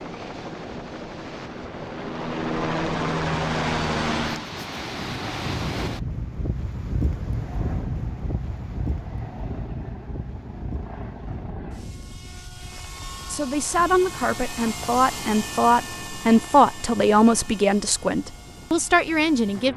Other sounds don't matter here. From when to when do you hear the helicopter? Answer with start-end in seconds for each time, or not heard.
0.0-4.5, 7.3-19.7.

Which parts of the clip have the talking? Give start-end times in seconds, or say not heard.
13.3-19.7.